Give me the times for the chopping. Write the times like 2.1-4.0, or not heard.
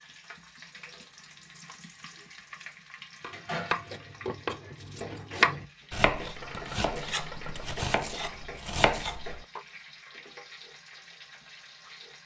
3.2-9.6.